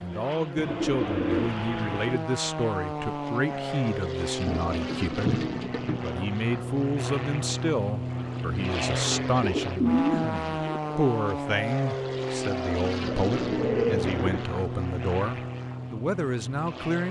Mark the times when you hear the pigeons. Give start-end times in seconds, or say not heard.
0.6-2.2, 4.5-6.0, 9.4-10.9, 13.0-14.5.